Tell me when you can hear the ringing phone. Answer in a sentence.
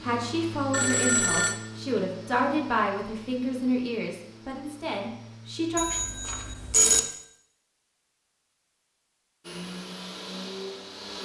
The ringing phone can be heard from 0.7 to 1.6 s and from 5.8 to 7.0 s.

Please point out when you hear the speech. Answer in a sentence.
You can hear the speech from 0.0 to 5.8 s.